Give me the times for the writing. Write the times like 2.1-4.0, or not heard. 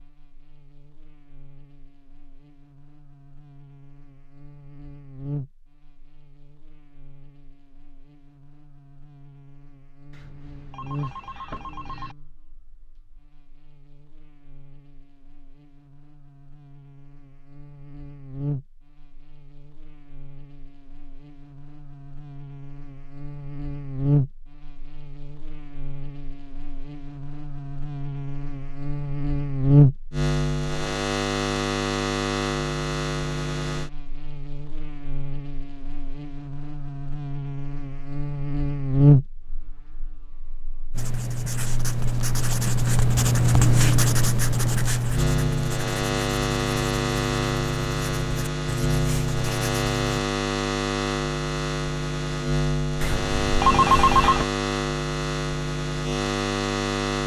40.9-50.2.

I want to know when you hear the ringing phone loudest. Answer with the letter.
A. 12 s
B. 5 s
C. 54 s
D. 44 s
C.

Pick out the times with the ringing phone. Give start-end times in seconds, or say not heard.
10.1-12.2, 53.0-54.5.